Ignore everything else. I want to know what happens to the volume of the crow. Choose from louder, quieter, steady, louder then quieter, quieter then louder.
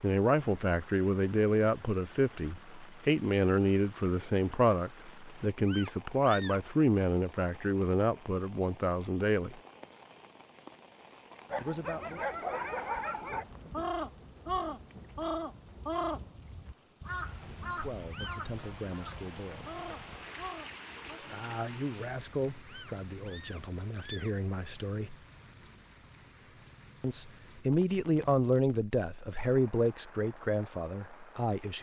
quieter.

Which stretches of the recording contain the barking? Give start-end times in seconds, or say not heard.
11.5-13.4.